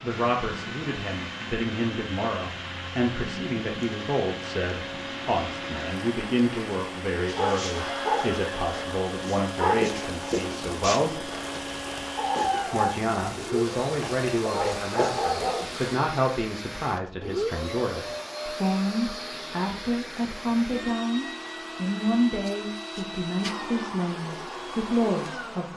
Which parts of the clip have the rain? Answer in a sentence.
The rain can be heard from 0.0 to 16.0 s.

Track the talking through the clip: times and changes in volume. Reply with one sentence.
The talking can be heard from 0.0 to 11.2 s, at a steady volume; and from 12.7 to 25.7 s, at a steady volume.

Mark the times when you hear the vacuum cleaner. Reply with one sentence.
The vacuum cleaner can be heard from 0.0 to 25.7 s.